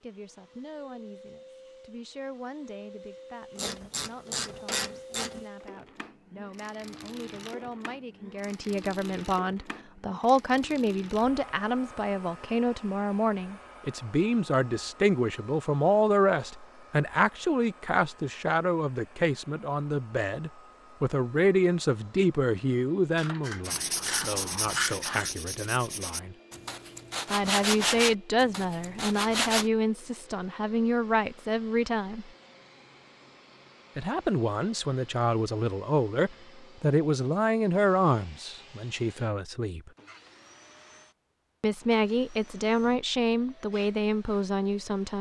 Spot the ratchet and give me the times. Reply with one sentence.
The ratchet can be heard from 3.5 to 5.5 s and from 23.1 to 25.3 s.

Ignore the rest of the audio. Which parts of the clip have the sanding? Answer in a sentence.
The sanding can be heard from 23.6 to 29.7 s.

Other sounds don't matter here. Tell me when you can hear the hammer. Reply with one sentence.
You can't hear the hammer here.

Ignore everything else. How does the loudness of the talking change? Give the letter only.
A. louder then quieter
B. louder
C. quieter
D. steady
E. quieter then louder
B.